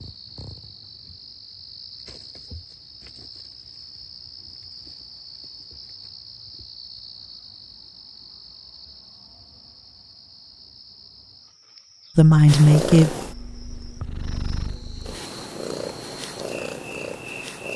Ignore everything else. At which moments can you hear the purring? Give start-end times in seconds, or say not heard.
12.4-17.7.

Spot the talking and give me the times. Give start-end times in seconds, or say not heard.
12.2-13.2.